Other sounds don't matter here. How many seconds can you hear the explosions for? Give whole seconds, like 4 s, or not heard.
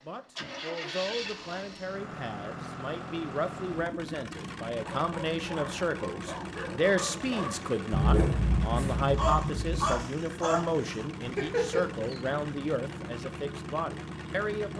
2 s.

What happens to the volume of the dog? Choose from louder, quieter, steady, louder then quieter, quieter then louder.
louder.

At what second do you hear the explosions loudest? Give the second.
8 s.